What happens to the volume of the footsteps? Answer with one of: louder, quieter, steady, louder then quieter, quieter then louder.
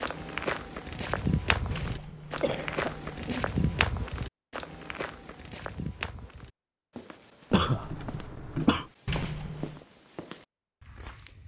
quieter.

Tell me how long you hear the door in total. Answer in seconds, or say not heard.
2 s.